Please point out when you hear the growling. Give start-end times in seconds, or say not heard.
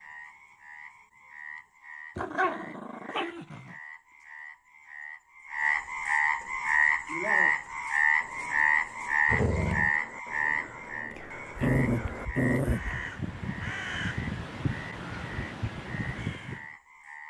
2.1-3.8, 9.2-9.9, 11.6-13.1.